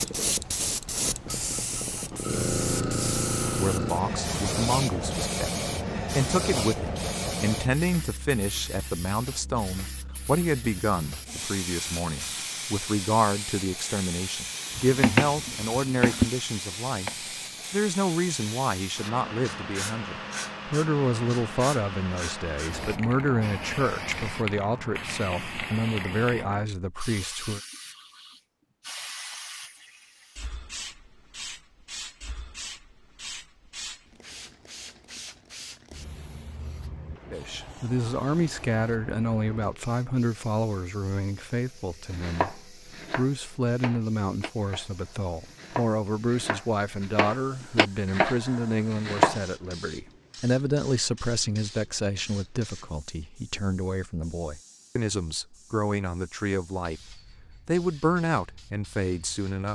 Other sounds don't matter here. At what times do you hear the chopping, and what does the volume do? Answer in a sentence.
You can hear the chopping briefly from 14.8 to 17.4 s; and from 42.1 to 49.4 s, getting louder.